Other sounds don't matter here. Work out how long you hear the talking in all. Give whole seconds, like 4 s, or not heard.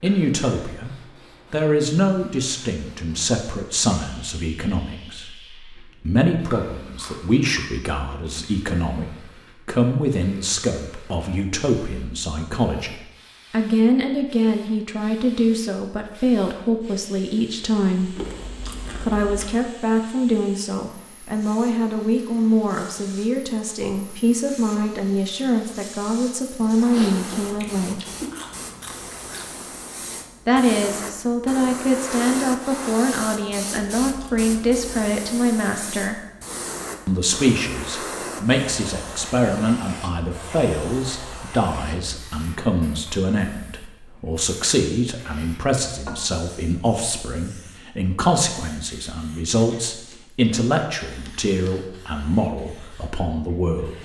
50 s.